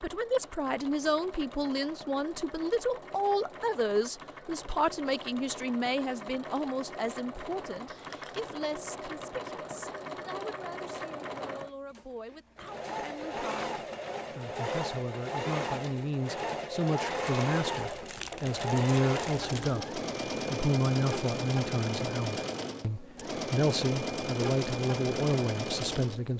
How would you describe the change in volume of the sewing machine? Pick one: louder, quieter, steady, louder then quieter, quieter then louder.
louder.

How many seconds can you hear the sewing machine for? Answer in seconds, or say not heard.
26 s.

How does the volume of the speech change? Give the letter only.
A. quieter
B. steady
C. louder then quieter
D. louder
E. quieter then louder
E.